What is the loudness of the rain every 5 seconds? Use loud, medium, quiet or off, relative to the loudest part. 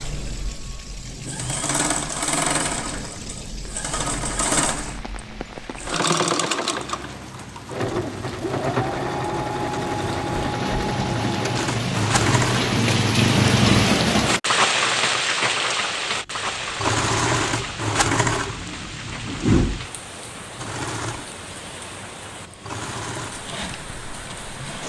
quiet, quiet, loud, medium, quiet.